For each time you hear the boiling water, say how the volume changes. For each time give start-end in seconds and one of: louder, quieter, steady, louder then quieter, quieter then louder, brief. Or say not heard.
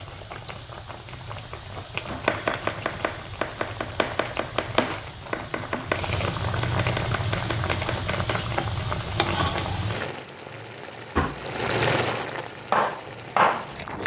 0.0-14.0 louder.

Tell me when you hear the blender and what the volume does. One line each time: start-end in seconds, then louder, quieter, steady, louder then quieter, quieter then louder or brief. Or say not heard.
not heard.